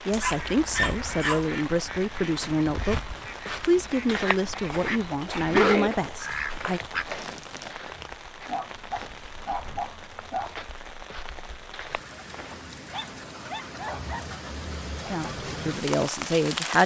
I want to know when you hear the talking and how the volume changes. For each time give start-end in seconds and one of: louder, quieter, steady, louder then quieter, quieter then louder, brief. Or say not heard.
0.1-6.8 steady
15.1-16.8 brief.